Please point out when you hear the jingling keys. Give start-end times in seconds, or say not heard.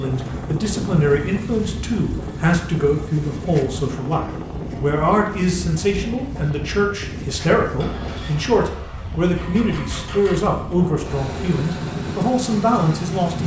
not heard.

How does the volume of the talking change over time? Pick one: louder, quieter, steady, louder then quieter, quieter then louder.
steady.